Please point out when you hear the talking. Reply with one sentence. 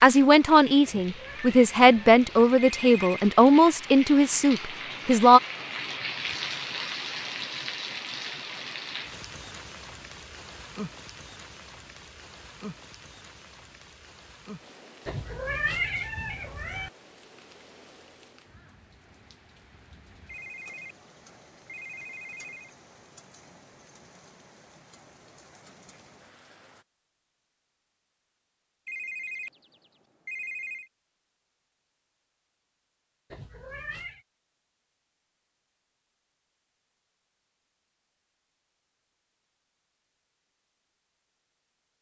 The talking can be heard from 0.0 to 5.4 s.